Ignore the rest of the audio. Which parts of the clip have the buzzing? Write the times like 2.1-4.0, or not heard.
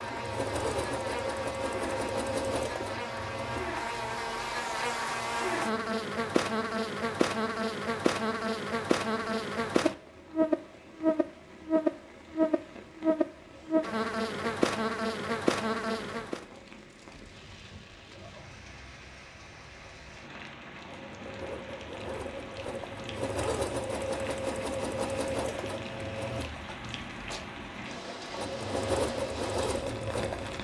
0.0-16.4.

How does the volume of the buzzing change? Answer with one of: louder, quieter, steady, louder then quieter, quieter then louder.
louder.